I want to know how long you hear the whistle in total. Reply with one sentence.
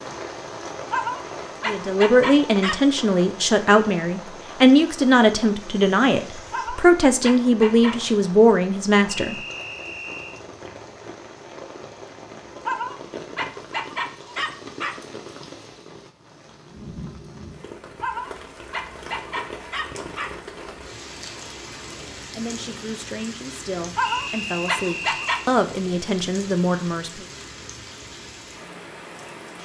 You can hear the whistle for 3 seconds altogether.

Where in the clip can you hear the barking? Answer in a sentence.
The barking can be heard from 0.9 to 2.9 s, from 6.5 to 8.0 s, from 12.7 to 15.0 s, from 18.0 to 20.4 s and from 23.9 to 25.4 s.